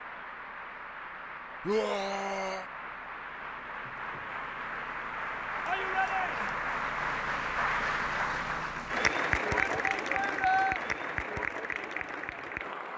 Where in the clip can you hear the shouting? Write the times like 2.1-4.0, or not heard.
1.6-2.6, 5.7-6.5, 9.6-10.8.